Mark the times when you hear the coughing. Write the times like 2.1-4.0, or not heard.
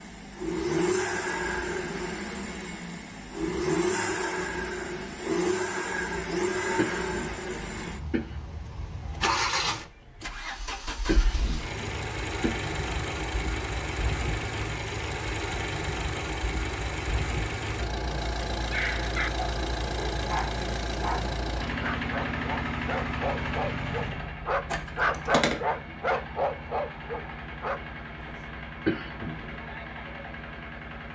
6.8-8.3, 11.1-12.7, 28.9-29.6.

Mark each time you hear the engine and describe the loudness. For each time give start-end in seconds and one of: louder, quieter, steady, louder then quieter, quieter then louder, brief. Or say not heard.
0.0-31.1 quieter.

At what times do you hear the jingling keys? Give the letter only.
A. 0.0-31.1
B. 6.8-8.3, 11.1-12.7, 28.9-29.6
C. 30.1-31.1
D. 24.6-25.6
D.